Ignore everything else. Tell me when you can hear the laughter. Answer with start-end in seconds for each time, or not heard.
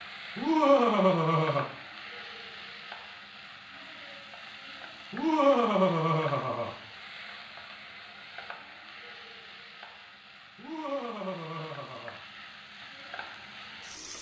0.3-1.6, 5.1-6.7, 10.6-12.2.